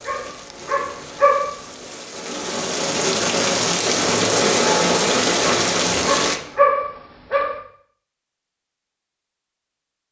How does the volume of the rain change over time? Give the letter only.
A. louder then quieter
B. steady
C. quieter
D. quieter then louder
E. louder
E.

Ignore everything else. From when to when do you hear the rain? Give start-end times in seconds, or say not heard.
0.0-6.4.